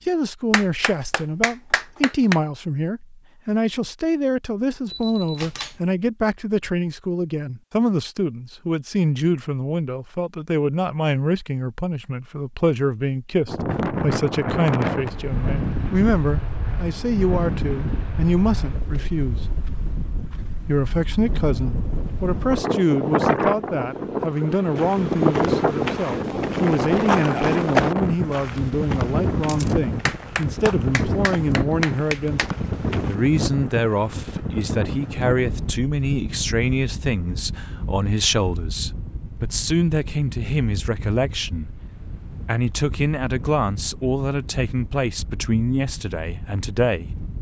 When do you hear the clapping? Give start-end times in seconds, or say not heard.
0.5-2.4, 30.1-32.5.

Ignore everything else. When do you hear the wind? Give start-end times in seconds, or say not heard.
13.4-47.3.